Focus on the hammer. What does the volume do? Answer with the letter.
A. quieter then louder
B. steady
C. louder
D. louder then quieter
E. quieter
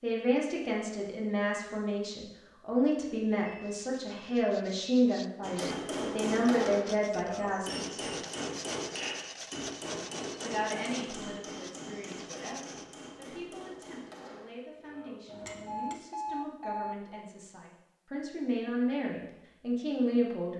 E.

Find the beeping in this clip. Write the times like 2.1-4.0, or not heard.
3.5-4.9, 15.7-17.2.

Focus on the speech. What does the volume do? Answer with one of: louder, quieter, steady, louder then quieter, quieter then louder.
quieter then louder.